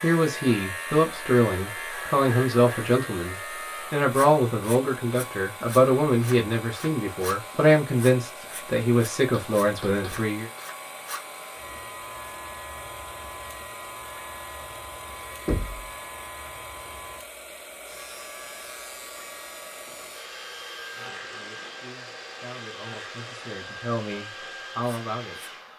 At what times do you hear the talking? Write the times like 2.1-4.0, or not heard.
0.0-10.5, 20.9-25.6.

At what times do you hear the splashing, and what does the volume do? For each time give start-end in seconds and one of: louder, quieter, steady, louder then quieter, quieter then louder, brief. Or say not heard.
not heard.